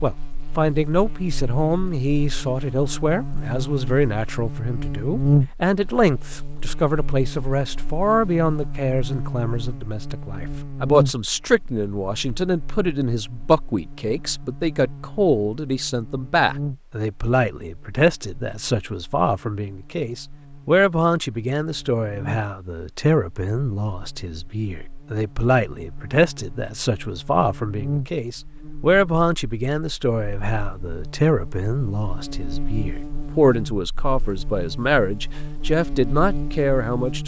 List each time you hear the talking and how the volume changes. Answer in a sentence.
You can hear the talking from 0.0 to 37.2 s, at a steady volume.